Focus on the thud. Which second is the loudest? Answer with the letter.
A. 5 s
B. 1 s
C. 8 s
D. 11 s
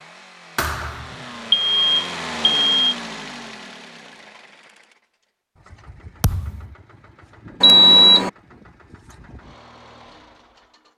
B.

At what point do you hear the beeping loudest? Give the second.
8 s.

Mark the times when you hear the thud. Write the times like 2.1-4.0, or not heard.
0.6-1.1, 6.2-6.8.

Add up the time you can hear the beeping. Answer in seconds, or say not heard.
2 s.